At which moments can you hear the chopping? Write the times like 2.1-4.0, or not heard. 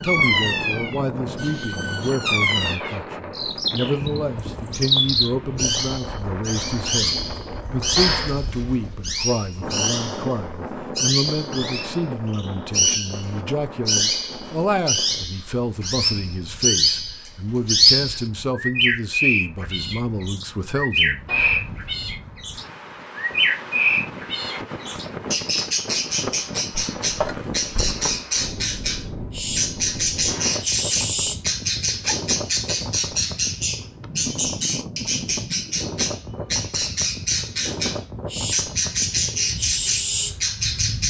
26.7-28.1.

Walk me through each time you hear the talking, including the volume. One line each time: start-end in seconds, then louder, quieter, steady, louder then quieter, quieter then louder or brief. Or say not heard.
0.0-21.3 steady.